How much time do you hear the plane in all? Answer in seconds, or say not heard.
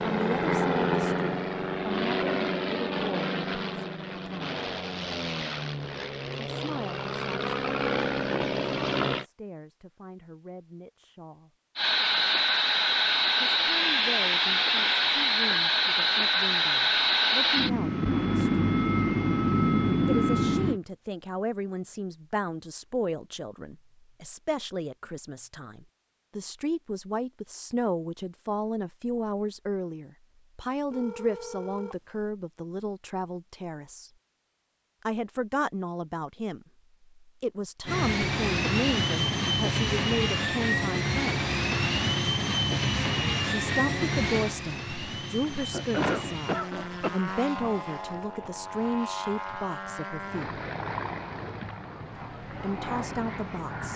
34 s.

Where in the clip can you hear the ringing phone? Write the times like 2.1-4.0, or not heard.
30.9-31.9.